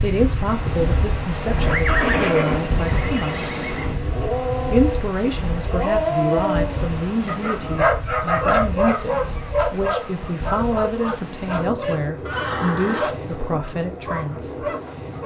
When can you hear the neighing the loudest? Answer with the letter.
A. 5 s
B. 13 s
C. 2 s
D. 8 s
C.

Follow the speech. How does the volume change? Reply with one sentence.
The loudness of the speech stays about the same.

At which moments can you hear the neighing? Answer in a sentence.
The neighing can be heard from 1.4 to 4.0 s and from 12.2 to 13.2 s.